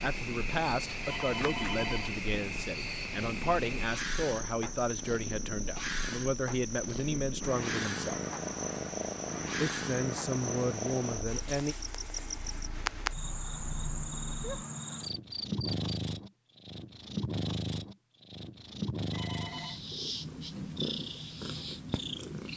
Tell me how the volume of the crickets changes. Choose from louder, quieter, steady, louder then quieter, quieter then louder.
steady.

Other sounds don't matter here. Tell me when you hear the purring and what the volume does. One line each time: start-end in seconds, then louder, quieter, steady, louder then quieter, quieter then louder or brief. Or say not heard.
0.0-22.5 louder.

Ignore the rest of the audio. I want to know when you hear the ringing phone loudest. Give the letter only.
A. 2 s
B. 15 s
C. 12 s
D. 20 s
A.